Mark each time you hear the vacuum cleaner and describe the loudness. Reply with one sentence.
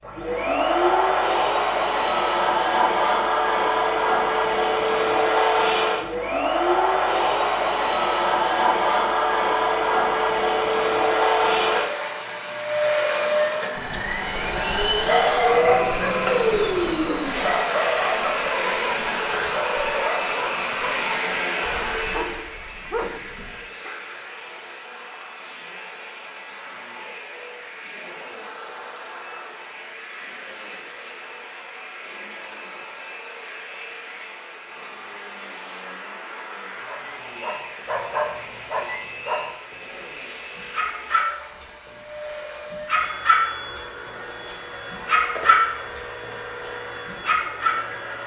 The vacuum cleaner can be heard from 0.0 to 48.2 s, getting quieter.